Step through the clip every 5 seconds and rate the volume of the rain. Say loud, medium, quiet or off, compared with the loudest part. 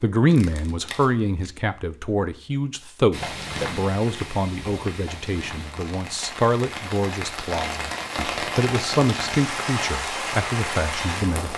medium, loud, loud.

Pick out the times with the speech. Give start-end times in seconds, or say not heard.
0.0-11.5.